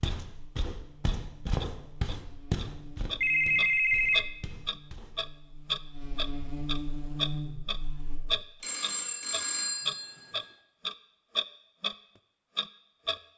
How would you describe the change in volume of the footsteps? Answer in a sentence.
The loudness of the footsteps goes up, then down.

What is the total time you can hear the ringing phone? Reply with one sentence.
The ringing phone can be heard for 3 seconds in total.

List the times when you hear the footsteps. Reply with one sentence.
You can hear the footsteps from 0.0 to 5.1 s.